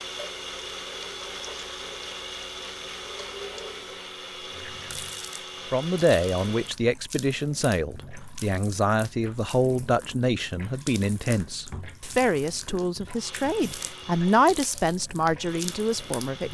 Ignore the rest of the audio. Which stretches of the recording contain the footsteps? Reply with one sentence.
The footsteps can't be heard in this clip.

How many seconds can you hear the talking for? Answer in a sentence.
The talking can be heard for 11 seconds in total.